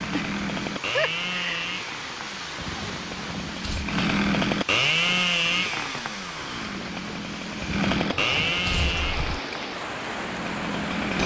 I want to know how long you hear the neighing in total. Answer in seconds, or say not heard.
3 s.